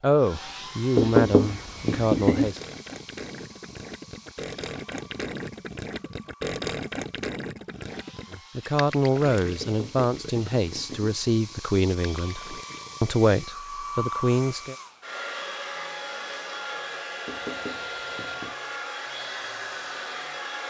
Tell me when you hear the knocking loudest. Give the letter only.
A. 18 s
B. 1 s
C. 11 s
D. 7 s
B.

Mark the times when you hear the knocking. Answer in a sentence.
You can hear the knocking from 0.9 to 2.5 s, from 9.6 to 11.2 s and from 17.2 to 18.6 s.